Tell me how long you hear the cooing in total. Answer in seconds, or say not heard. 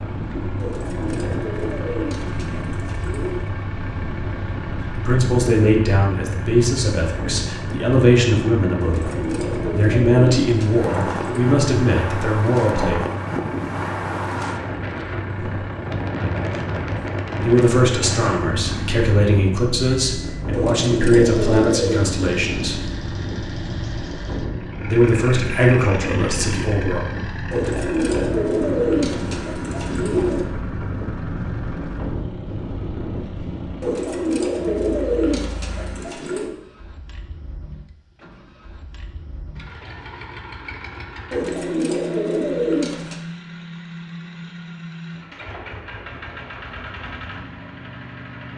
15 s.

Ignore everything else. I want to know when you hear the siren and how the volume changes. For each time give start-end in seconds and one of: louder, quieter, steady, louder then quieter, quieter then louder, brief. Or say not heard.
not heard.